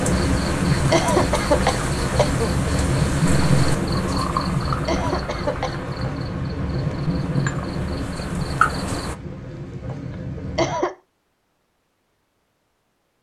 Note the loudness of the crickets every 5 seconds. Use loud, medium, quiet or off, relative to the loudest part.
loud, loud, off.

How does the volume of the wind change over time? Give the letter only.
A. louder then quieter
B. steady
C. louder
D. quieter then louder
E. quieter
E.